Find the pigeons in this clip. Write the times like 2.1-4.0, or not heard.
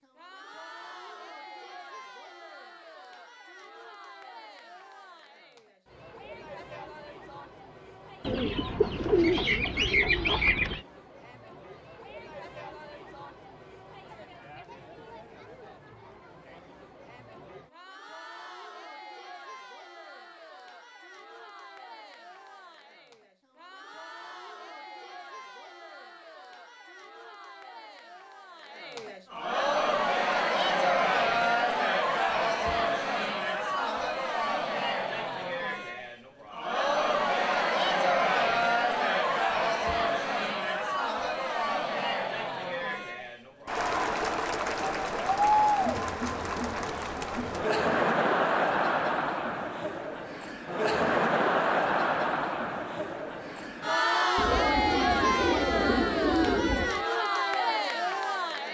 8.2-10.8, 54.4-57.0.